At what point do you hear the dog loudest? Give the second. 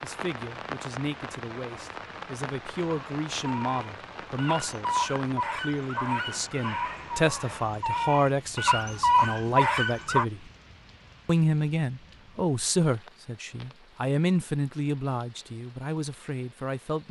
9 s.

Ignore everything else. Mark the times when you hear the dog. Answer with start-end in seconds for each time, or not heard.
2.9-10.2.